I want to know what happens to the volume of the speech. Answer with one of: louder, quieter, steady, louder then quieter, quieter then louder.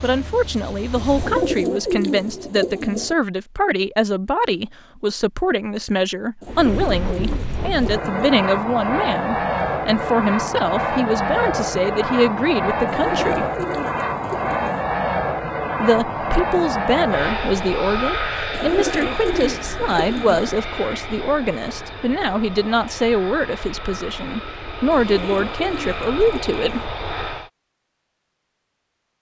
steady.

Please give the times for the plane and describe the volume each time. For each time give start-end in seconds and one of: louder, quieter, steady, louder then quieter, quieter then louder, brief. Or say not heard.
0.0-1.8 brief
6.5-27.5 quieter.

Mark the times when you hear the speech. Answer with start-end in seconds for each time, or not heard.
0.0-13.4, 15.8-26.9.